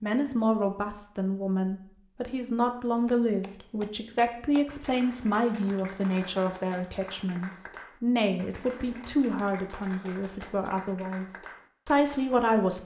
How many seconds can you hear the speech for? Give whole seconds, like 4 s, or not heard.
12 s.